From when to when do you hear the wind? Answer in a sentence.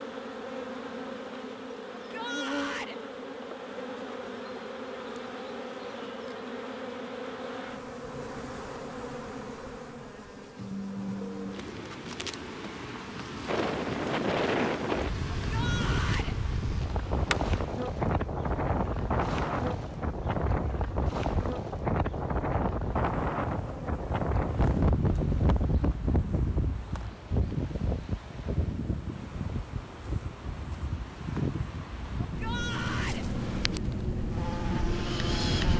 You can hear the wind from 13.4 to 35.7 s.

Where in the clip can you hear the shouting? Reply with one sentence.
The shouting can be heard from 1.9 to 3.0 s, from 15.4 to 16.4 s and from 32.2 to 33.2 s.